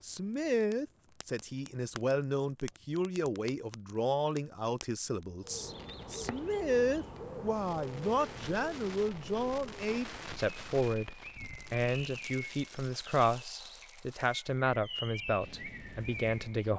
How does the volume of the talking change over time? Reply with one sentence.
The volume of the talking stays about the same.